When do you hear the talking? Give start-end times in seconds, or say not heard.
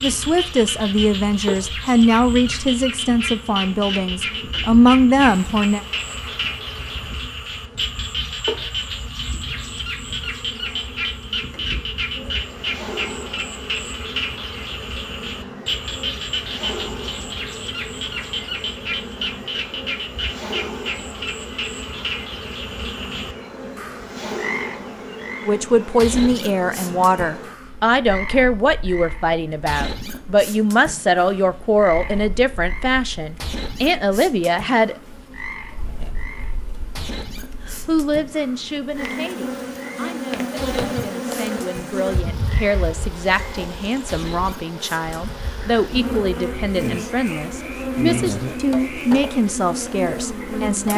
0.0-5.8, 25.4-35.0, 37.6-50.9.